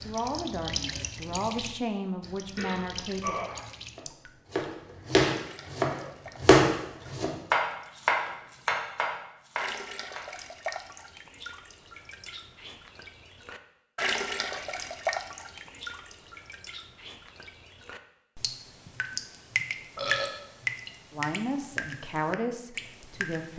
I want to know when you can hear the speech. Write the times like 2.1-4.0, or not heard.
0.0-3.4, 21.1-23.5.